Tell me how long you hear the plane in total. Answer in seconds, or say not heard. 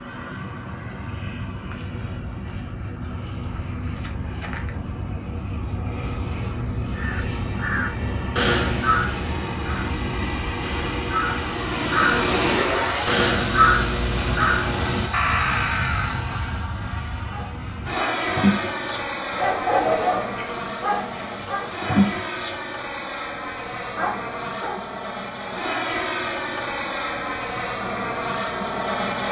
29 s.